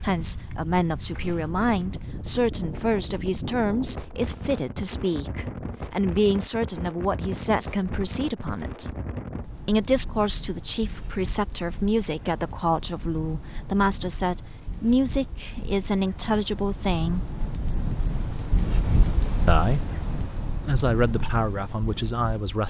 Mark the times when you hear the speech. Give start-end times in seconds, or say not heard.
0.0-9.0, 9.7-17.4, 19.4-22.6.